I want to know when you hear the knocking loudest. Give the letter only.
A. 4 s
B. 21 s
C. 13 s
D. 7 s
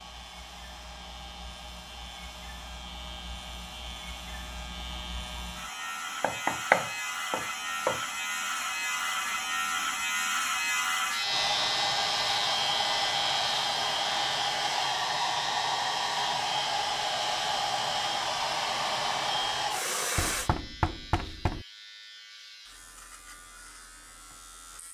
D.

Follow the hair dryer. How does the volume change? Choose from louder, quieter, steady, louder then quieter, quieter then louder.
louder.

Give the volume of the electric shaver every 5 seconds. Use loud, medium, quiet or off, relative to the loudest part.
quiet, loud, loud, medium, quiet.